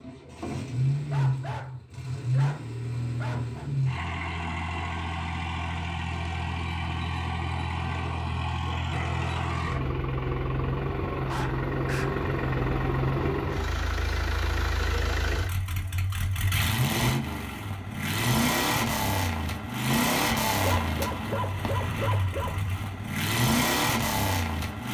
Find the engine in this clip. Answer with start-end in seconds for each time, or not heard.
0.0-24.8.